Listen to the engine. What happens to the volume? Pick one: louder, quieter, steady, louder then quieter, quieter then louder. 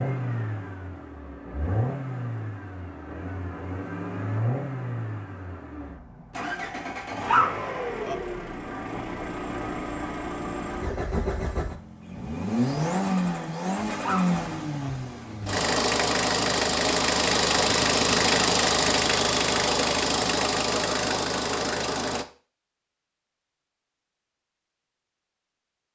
louder.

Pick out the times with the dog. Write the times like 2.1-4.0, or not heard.
7.2-8.2, 14.0-14.9.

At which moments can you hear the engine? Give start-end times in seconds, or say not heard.
0.0-22.2.